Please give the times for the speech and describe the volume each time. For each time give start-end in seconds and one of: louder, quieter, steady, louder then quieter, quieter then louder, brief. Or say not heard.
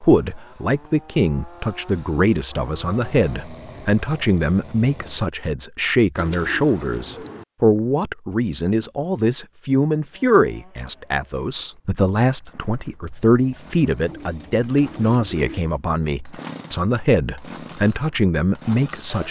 0.0-19.2 steady.